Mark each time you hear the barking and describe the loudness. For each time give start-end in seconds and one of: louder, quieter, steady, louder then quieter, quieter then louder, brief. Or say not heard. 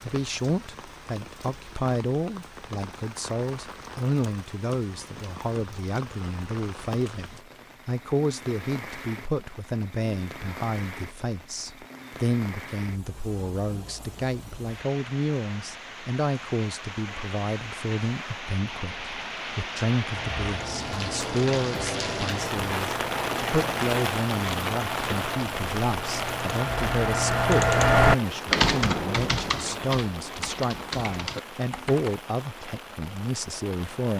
not heard.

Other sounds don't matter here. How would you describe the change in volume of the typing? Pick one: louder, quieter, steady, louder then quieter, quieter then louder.
louder then quieter.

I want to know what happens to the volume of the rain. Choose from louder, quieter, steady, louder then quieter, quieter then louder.
louder then quieter.